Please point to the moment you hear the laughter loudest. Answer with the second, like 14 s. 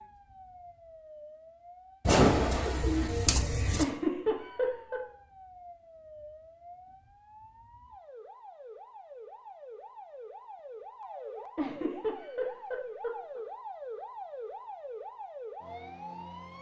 4 s.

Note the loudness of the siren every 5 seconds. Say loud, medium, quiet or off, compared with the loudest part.
medium, medium, loud, loud.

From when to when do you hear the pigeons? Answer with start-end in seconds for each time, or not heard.
2.0-3.9.